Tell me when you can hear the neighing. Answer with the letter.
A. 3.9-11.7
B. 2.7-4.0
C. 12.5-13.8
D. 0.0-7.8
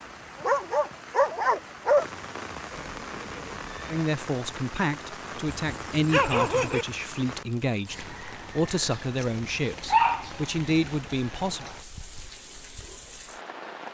B.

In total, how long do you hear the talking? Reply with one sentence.
The talking can be heard for 8 seconds in total.